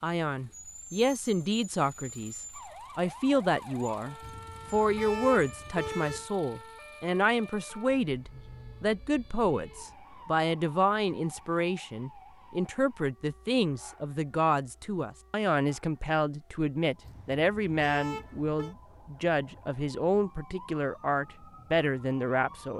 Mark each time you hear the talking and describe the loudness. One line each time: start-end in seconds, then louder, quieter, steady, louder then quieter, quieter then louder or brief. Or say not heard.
0.0-22.7 steady.